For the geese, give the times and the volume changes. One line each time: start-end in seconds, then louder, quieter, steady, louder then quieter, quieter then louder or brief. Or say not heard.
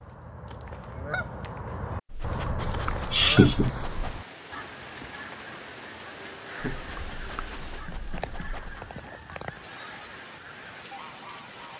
0.0-11.7 quieter.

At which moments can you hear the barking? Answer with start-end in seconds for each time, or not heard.
2.0-4.2, 6.7-8.9.